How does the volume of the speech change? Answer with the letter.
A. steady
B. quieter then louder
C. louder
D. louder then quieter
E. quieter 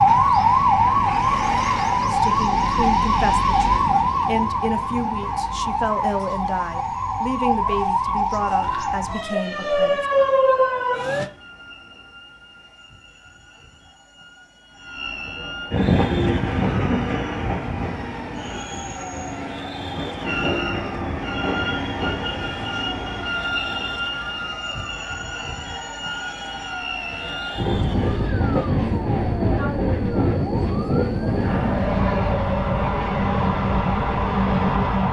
A.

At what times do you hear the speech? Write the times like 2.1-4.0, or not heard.
2.1-10.1.